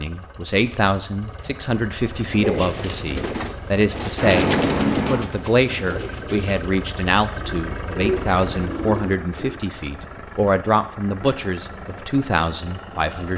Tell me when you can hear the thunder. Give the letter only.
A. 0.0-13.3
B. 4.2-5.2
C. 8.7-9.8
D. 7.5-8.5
B.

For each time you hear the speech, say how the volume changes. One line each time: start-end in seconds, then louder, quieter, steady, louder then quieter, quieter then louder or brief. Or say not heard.
0.0-13.3 steady.